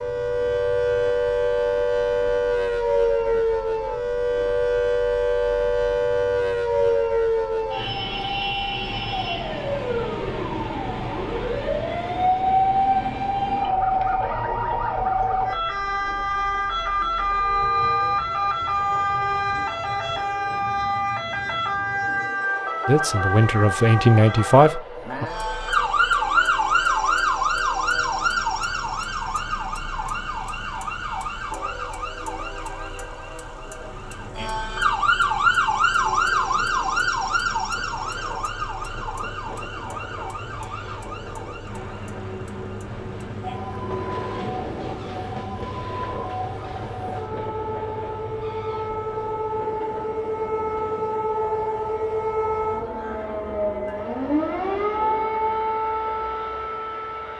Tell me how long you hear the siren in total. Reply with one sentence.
The siren can be heard for 57 seconds in total.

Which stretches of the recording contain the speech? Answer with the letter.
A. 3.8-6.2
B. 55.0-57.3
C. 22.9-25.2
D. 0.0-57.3
C.